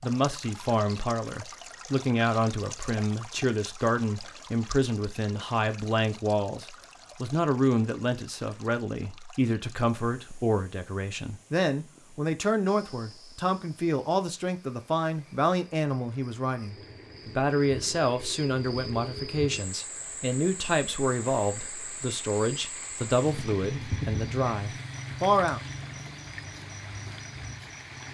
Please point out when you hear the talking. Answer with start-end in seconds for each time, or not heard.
0.0-25.6.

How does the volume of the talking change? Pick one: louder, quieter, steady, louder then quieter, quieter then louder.
steady.